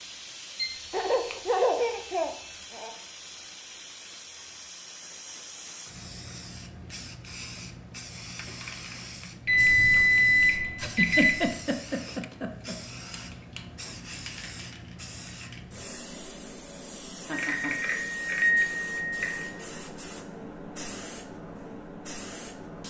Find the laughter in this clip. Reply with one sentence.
You can hear the laughter from 0.9 to 2.9 s, from 10.8 to 12.8 s and from 17.2 to 17.8 s.